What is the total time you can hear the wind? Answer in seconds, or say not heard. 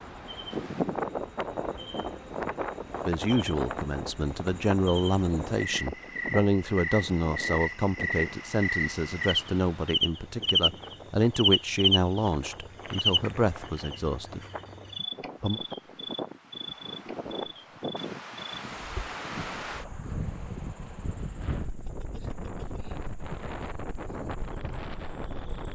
26 s.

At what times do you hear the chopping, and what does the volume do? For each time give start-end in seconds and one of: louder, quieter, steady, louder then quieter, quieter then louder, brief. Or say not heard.
not heard.